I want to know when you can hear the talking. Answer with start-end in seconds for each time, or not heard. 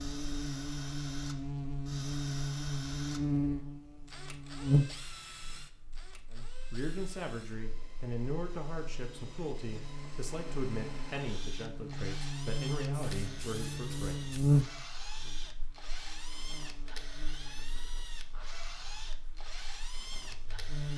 6.3-14.2.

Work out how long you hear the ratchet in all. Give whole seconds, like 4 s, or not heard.
not heard.